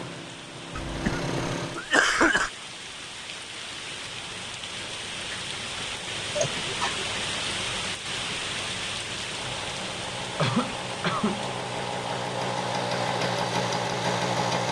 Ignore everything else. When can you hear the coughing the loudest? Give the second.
2 s.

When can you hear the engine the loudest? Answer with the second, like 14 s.
14 s.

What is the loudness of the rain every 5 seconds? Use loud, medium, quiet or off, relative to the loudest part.
medium, loud, medium.